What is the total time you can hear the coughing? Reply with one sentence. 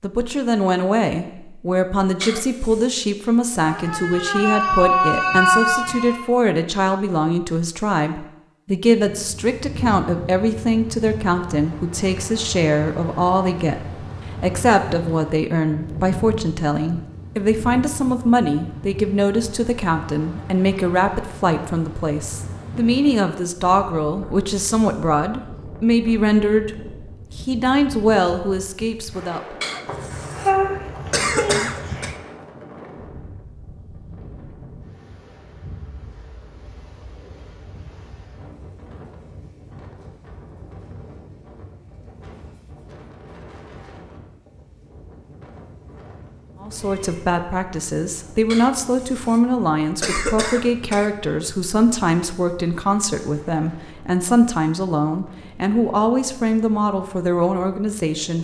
The coughing can be heard for 5 seconds in total.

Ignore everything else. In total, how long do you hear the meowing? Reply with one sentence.
You can hear the meowing for 6 seconds altogether.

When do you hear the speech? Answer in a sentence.
The speech can be heard from 0.0 to 29.6 s and from 46.6 to 58.3 s.